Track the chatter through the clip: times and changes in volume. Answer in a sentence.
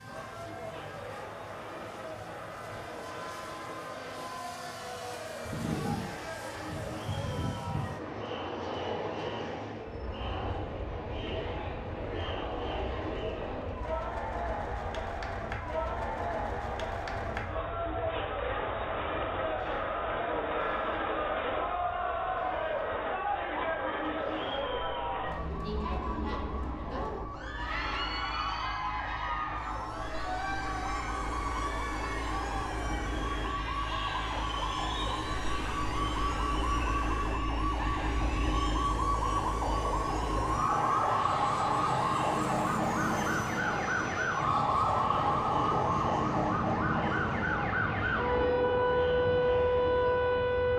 The chatter can be heard from 0.0 to 50.7 s, getting louder then quieter.